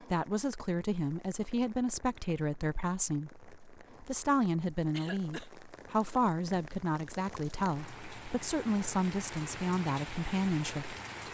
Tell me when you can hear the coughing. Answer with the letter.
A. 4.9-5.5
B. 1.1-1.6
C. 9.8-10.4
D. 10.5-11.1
A.